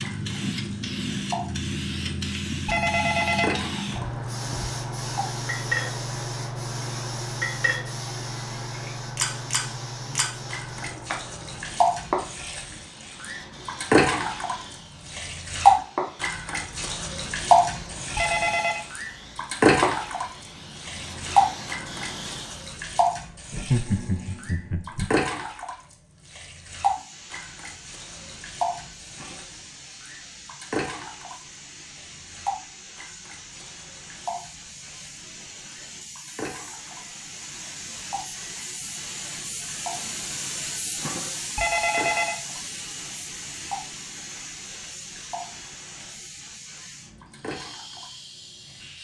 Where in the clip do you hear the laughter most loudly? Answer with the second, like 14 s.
24 s.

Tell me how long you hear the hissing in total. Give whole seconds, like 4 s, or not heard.
45 s.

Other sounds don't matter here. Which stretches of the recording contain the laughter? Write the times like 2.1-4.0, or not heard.
23.5-25.1.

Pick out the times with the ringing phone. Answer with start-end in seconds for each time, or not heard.
2.6-4.7, 18.1-18.8, 41.5-42.4.